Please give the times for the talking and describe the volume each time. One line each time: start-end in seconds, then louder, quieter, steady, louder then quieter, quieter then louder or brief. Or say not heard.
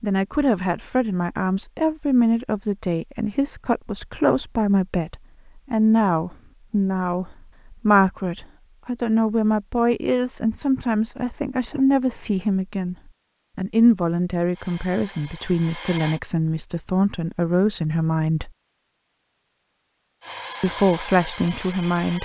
0.0-12.9 steady
13.6-18.5 steady
20.6-22.2 brief.